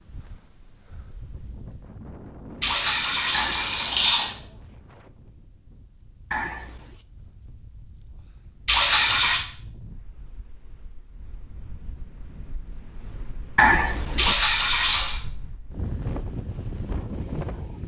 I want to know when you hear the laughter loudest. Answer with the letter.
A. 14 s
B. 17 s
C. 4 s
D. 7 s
A.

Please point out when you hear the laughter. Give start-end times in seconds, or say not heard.
3.3-4.1, 6.3-7.0, 13.6-14.3.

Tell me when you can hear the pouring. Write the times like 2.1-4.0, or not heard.
2.6-4.3, 8.7-9.4, 14.2-15.2.